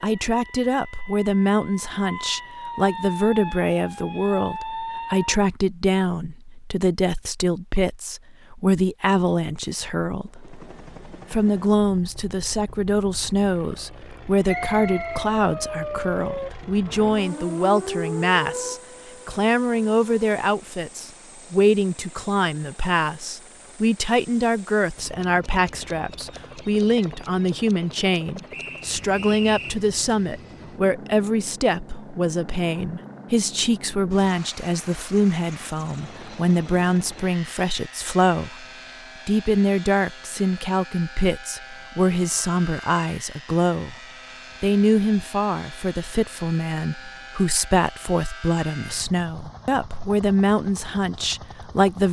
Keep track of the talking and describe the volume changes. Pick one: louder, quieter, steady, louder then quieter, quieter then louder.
steady.